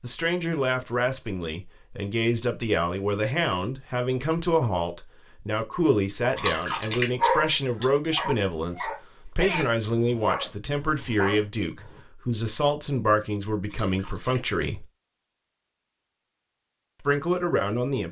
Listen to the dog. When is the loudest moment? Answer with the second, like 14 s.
7 s.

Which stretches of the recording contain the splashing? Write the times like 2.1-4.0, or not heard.
6.3-7.1, 13.7-14.4.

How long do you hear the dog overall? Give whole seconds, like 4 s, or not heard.
6 s.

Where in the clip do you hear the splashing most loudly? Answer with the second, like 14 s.
7 s.